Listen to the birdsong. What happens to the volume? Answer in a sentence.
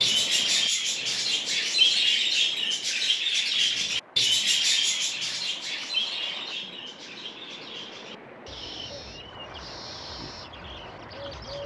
The loudness of the birdsong goes down.